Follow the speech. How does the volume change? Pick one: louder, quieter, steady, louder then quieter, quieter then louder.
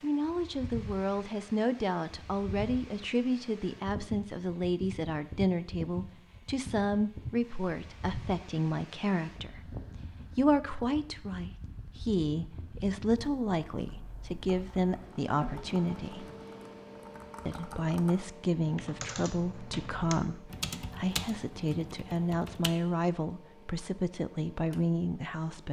steady.